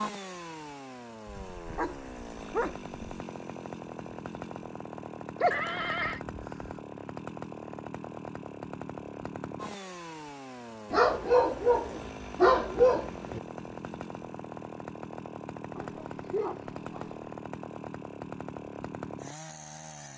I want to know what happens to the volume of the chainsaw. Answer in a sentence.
The loudness of the chainsaw stays about the same.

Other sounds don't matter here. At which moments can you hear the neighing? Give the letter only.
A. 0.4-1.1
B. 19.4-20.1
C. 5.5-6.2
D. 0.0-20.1
C.